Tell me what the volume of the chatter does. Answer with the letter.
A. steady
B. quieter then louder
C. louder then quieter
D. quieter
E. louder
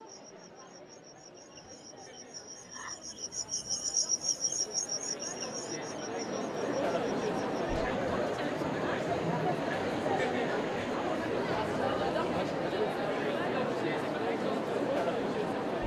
E.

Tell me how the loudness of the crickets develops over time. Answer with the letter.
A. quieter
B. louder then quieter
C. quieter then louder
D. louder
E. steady
B.